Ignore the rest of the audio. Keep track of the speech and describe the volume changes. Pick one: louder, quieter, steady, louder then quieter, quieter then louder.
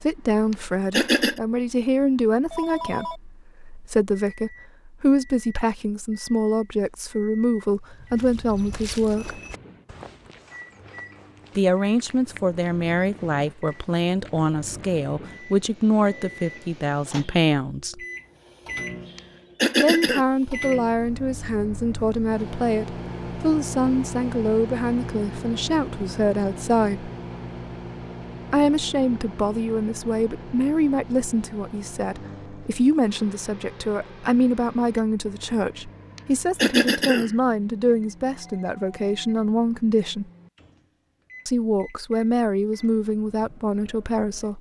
steady.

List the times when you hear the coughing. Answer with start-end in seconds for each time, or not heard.
0.5-1.4, 19.1-20.2, 36.1-37.3.